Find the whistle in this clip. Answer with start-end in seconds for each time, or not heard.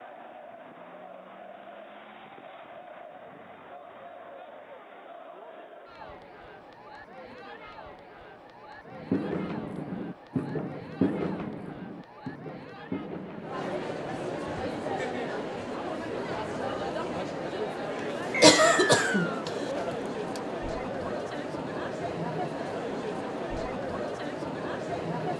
18.4-19.4.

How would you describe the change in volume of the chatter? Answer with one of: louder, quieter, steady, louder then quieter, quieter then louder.
louder.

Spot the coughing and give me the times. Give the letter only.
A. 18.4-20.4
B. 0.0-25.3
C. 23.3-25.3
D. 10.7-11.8
A.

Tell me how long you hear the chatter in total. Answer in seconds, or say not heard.
25 s.